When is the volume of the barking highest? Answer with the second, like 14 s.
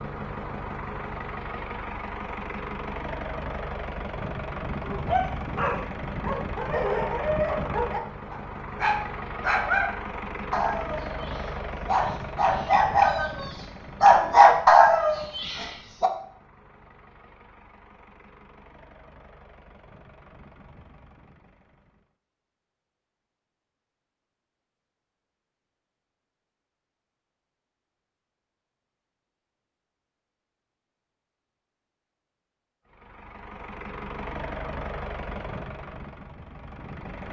15 s.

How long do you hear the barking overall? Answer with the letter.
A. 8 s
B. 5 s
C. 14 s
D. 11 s
D.